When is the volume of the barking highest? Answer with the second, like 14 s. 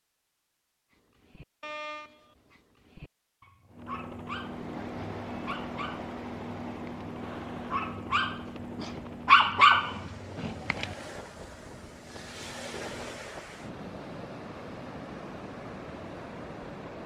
9 s.